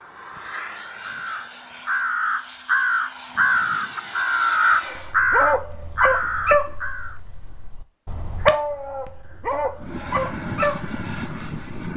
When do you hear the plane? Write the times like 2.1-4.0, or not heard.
0.0-5.2, 9.8-11.9.